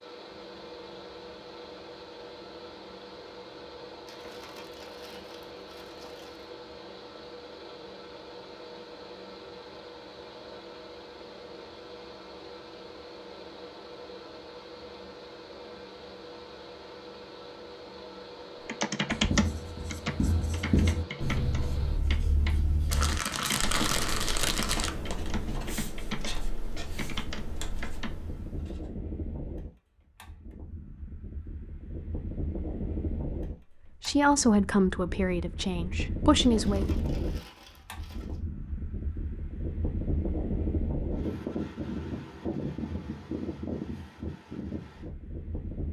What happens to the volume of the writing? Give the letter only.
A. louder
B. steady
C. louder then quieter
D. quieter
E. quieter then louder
D.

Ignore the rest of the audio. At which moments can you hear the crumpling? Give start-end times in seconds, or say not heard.
4.0-6.5, 22.9-24.9, 36.4-38.4.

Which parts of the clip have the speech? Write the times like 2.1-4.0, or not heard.
33.9-37.0.